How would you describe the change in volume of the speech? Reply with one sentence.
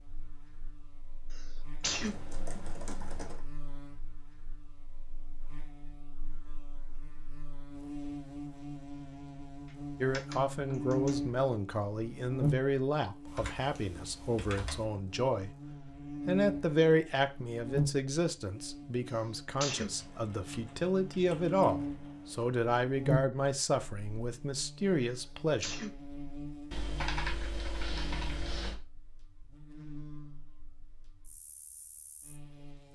The loudness of the speech stays about the same.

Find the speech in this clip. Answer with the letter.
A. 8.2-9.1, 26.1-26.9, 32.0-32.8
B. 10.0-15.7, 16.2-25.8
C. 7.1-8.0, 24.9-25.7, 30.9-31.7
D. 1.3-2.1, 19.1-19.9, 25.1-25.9
B.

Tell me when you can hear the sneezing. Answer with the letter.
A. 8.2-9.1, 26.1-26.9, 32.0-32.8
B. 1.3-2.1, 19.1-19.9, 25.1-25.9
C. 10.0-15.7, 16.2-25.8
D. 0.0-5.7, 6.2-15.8
B.